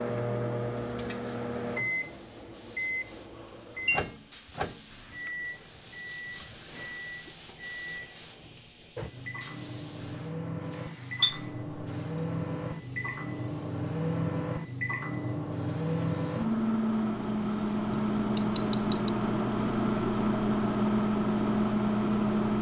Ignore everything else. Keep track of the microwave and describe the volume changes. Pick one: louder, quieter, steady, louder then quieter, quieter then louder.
quieter then louder.